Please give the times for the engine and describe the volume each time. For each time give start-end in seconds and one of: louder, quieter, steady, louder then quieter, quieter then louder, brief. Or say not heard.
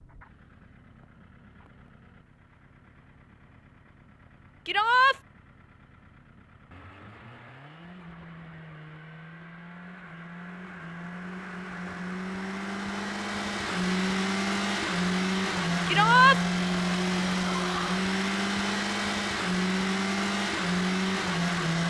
0.0-21.8 louder.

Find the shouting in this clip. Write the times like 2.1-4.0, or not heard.
4.7-5.2, 15.8-16.4.